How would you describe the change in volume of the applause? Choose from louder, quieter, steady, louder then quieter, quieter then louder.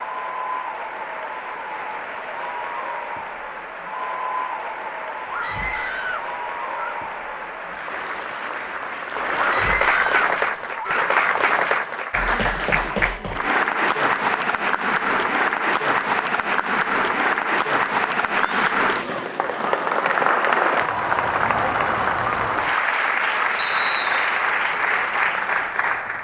louder.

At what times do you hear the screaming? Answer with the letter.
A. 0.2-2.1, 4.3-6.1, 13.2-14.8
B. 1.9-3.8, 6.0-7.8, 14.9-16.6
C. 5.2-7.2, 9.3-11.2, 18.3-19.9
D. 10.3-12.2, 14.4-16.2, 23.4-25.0
C.